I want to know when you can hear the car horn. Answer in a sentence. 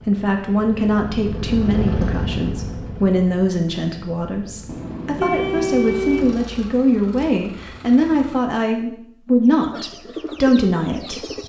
You can hear the car horn from 4.7 to 6.5 s.